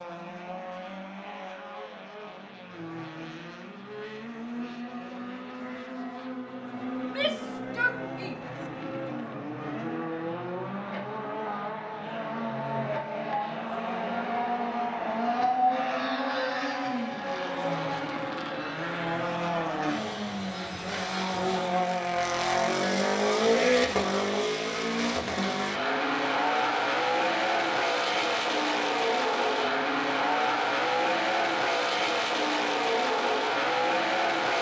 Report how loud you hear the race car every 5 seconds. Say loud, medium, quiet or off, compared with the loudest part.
quiet, medium, medium, loud, loud, loud, loud.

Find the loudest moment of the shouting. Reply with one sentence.
The loudest moment of the shouting is at 8 seconds.